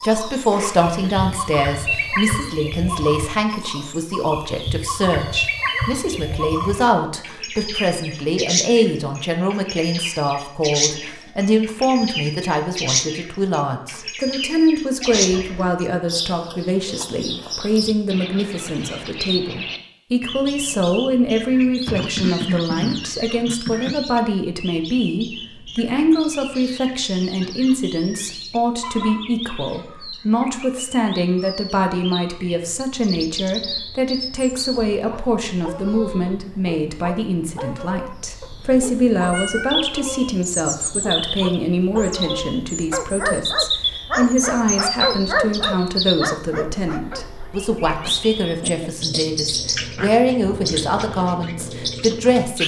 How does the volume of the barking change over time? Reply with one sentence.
The volume of the barking goes up.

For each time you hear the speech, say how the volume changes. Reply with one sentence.
The speech can be heard from 0.0 to 52.6 s, at a steady volume.